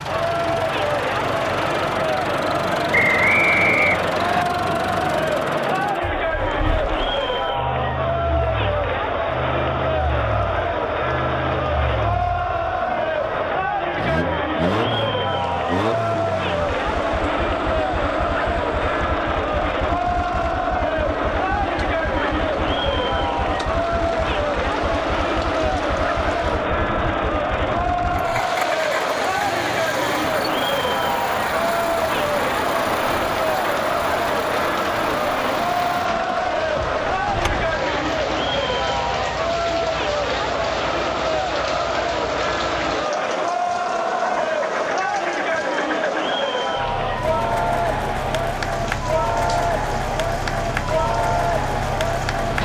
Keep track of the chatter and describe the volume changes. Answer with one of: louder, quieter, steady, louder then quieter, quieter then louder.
steady.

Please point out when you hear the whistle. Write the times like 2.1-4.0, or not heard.
2.9-4.5.